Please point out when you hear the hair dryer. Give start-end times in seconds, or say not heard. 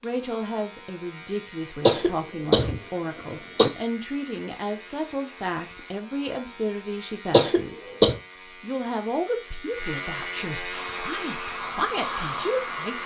10.7-13.0.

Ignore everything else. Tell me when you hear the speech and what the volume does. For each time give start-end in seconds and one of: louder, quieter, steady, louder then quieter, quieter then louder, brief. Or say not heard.
0.0-7.8 steady
8.6-13.0 quieter then louder.